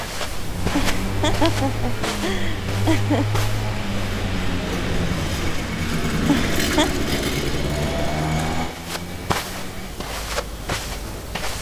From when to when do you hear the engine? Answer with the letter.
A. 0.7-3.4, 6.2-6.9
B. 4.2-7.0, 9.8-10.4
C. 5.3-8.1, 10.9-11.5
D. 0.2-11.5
D.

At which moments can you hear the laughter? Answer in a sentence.
You can hear the laughter from 0.7 to 3.4 s and from 6.2 to 6.9 s.